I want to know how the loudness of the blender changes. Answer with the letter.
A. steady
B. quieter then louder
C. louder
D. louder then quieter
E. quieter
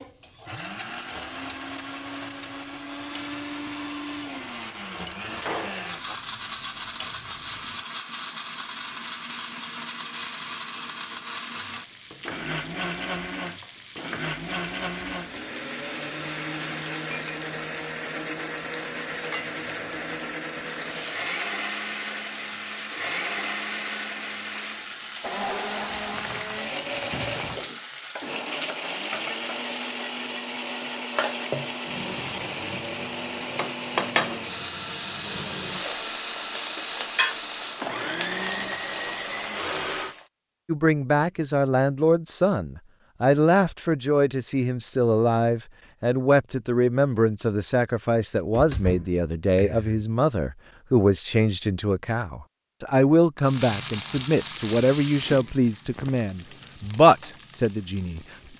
A.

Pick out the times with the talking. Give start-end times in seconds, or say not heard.
40.6-58.5.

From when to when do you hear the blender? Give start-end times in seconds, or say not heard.
0.0-40.1.